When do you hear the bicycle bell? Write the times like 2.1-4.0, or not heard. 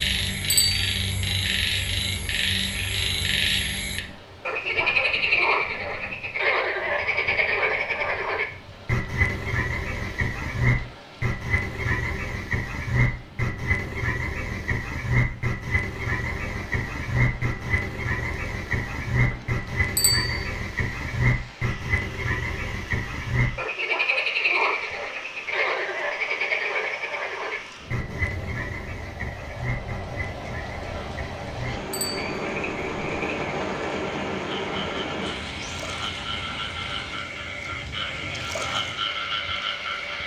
0.5-0.9, 19.9-20.4, 31.9-32.5.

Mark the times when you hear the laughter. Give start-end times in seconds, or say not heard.
not heard.